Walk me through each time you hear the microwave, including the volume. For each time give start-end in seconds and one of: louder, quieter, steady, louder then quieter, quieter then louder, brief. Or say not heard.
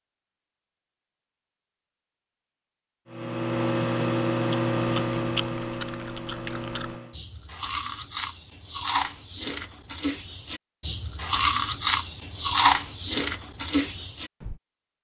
3.0-7.2 quieter.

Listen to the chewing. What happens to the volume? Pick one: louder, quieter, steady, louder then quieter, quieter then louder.
louder.